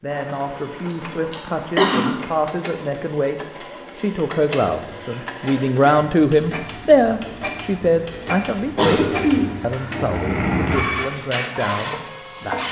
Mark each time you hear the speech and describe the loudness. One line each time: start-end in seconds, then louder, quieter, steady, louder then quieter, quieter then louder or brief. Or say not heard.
0.0-12.6 louder then quieter.